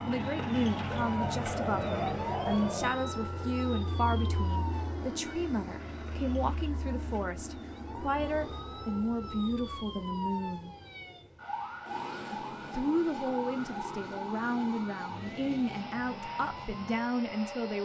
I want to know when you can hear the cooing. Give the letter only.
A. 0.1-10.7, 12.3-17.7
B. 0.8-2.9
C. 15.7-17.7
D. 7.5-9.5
B.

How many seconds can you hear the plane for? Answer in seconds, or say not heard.
18 s.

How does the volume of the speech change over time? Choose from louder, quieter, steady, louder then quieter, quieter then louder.
steady.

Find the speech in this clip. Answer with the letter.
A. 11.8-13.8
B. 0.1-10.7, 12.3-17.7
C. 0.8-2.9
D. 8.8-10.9
B.